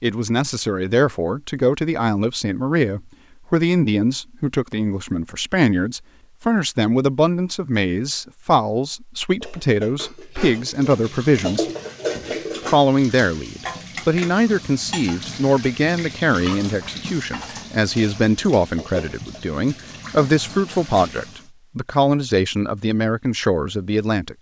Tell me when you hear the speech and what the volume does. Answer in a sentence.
The speech can be heard from 0.0 to 24.3 s, at a steady volume.